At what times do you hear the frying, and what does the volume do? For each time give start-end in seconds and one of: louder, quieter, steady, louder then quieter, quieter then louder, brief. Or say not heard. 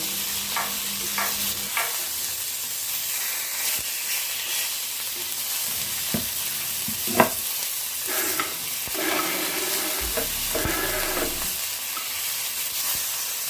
0.0-13.4 steady.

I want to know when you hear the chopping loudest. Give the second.
7 s.